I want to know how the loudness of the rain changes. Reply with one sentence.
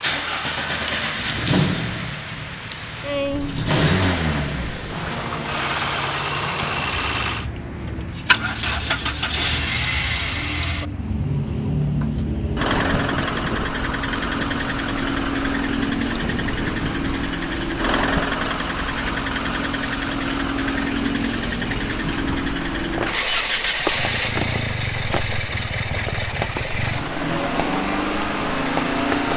The loudness of the rain stays about the same.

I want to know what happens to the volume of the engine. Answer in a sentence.
The volume of the engine stays about the same.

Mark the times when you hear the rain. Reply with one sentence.
The rain can be heard from 0.0 to 29.3 s.